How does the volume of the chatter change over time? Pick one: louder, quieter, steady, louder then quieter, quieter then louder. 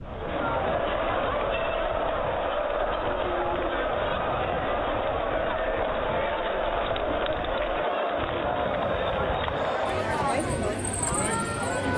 steady.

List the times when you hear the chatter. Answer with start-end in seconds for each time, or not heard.
0.0-11.9.